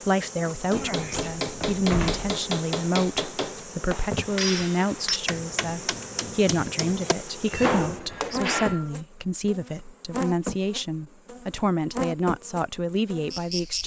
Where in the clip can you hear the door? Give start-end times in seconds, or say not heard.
0.9-2.3, 7.5-8.9.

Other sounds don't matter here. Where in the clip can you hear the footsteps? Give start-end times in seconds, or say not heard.
not heard.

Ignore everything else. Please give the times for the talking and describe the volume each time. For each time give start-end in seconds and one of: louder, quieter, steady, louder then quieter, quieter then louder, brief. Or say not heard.
0.1-13.8 steady.